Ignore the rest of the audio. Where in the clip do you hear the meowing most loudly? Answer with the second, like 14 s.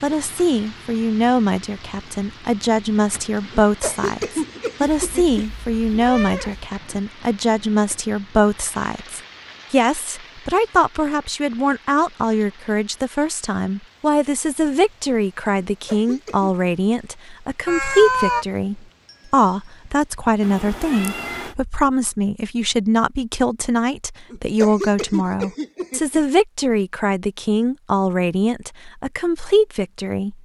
18 s.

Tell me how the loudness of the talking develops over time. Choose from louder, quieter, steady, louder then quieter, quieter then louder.
steady.